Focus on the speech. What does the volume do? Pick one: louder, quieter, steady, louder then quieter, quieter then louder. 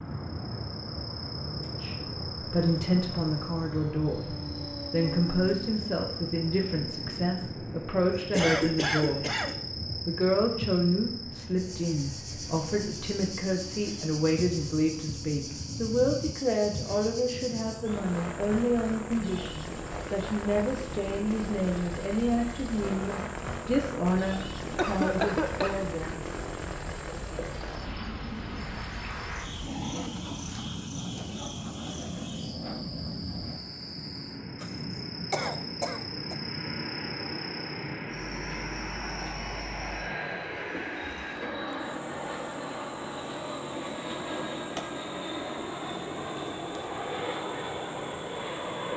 steady.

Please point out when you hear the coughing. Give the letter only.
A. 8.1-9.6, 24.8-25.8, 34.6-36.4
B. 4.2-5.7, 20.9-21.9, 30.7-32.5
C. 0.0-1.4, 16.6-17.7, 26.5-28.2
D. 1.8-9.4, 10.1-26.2
A.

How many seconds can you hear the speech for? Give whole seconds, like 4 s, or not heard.
24 s.